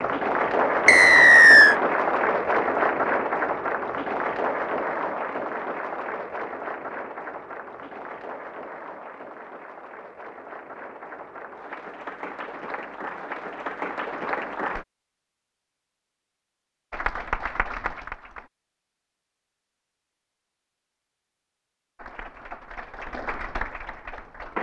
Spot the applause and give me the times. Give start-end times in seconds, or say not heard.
0.0-14.8, 16.9-18.5, 21.9-24.5.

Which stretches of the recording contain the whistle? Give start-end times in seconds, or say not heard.
0.8-1.8.